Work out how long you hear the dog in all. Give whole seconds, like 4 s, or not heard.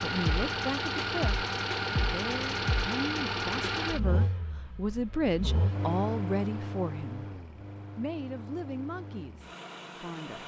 not heard.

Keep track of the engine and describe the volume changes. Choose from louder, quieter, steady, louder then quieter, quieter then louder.
quieter.